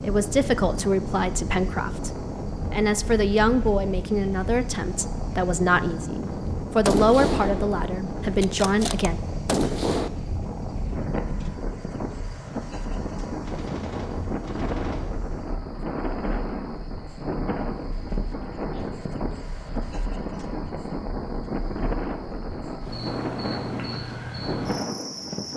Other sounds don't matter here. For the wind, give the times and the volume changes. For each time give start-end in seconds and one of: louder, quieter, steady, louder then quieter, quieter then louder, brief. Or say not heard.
0.0-25.5 steady.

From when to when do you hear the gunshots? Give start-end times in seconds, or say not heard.
6.3-10.1, 13.4-15.1.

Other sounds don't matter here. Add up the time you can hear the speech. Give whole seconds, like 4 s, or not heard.
9 s.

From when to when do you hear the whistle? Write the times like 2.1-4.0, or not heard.
not heard.